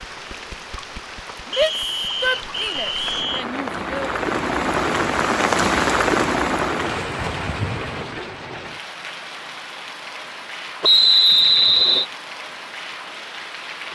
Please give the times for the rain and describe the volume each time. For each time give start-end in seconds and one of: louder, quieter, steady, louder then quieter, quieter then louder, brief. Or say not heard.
0.0-13.8 louder then quieter.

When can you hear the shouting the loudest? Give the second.
2 s.